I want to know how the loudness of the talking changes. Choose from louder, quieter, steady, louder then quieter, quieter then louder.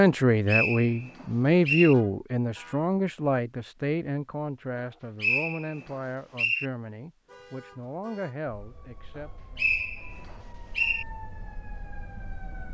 quieter.